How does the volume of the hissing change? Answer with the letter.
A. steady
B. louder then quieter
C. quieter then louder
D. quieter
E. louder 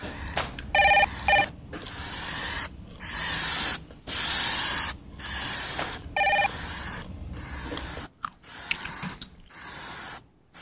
B.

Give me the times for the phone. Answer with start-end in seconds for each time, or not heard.
0.3-1.5, 5.8-6.5.